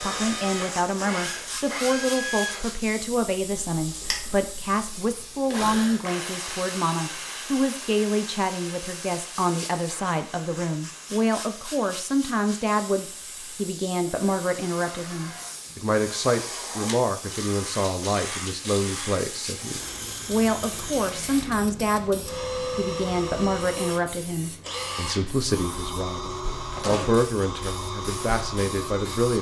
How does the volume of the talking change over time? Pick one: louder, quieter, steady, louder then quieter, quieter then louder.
steady.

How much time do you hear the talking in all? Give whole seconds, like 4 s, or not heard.
29 s.